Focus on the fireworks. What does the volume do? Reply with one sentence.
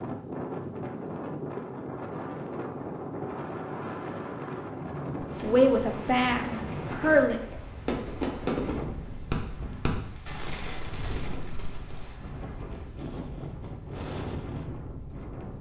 The loudness of the fireworks goes up, then down.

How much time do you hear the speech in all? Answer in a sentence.
The speech can be heard for 2 seconds in total.